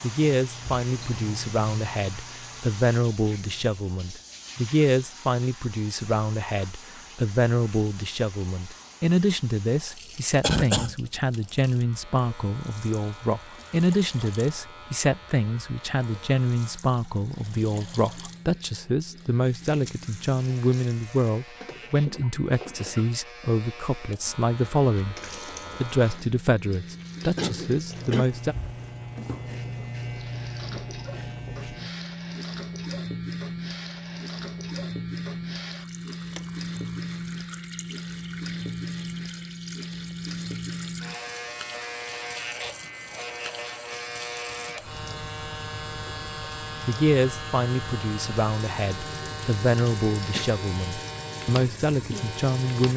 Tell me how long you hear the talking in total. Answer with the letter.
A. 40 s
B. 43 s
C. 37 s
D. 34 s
D.